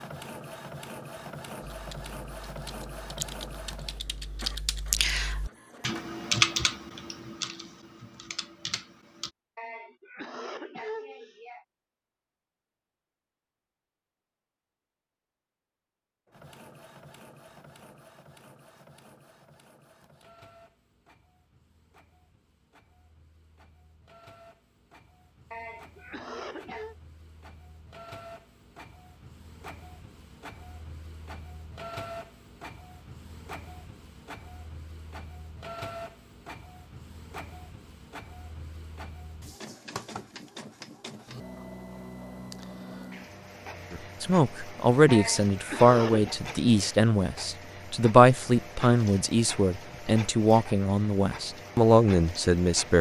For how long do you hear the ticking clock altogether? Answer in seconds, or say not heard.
not heard.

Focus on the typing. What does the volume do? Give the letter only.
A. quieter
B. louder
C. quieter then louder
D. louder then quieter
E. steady
D.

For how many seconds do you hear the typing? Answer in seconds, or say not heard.
8 s.